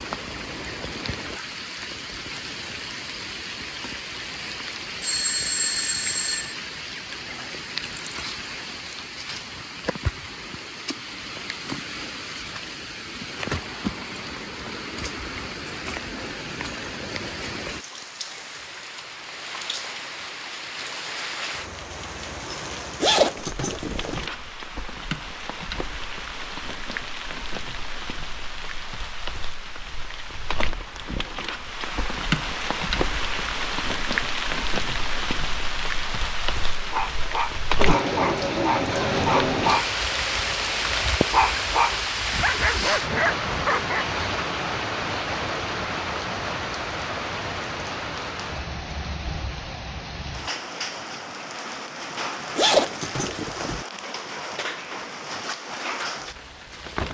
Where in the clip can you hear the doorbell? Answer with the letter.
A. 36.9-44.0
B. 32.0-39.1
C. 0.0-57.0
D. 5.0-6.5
D.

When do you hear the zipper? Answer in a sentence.
You can hear the zipper from 23.0 to 24.3 s and from 52.5 to 53.9 s.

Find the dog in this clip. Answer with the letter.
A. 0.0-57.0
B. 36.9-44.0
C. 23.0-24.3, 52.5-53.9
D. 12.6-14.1
B.